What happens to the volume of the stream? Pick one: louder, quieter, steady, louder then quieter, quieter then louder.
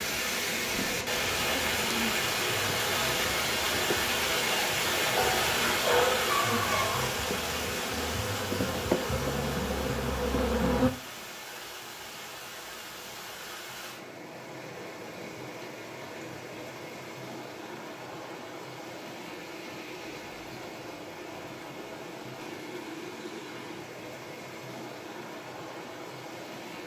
quieter.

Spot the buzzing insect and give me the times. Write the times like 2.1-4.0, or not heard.
0.0-10.9.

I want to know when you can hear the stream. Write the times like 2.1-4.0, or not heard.
0.0-26.8.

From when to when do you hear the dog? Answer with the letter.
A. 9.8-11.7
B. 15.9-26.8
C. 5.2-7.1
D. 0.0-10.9
C.